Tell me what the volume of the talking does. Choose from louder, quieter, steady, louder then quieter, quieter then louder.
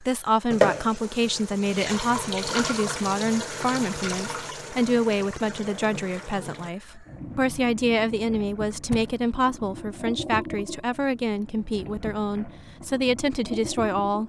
steady.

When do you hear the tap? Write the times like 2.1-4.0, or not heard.
0.5-14.2.